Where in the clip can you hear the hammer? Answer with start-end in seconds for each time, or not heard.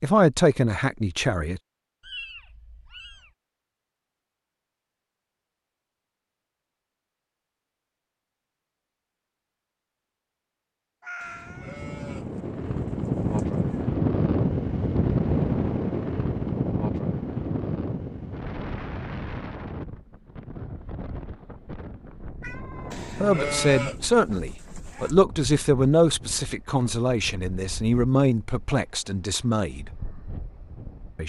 not heard.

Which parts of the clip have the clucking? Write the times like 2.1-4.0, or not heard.
not heard.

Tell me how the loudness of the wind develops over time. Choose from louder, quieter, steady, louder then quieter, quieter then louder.
quieter.